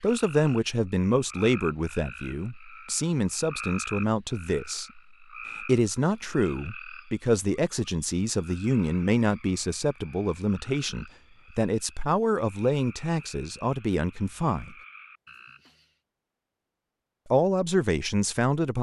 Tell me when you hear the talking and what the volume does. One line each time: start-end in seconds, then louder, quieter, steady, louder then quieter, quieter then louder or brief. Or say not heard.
0.0-5.0 quieter then louder
5.6-14.8 steady
17.2-18.7 brief.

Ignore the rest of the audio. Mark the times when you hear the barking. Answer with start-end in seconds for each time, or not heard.
not heard.